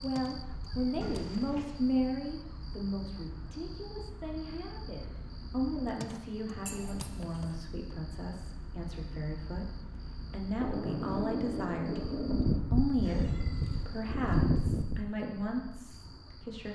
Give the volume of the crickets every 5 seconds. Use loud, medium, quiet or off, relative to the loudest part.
quiet, quiet, loud, quiet.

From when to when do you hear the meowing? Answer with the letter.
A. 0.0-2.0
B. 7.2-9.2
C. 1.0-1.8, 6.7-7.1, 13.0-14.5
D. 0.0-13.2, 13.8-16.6
C.